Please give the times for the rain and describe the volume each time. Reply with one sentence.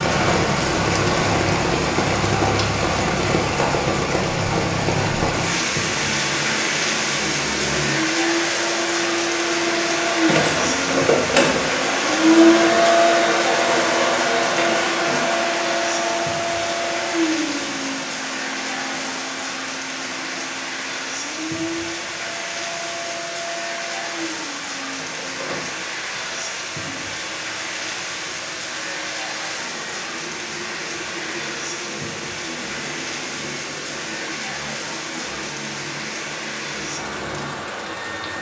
You can hear the rain from 0.0 to 38.3 s, getting quieter.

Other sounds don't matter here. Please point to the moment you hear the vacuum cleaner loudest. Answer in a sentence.
The volume of the vacuum cleaner peaks at 13 seconds.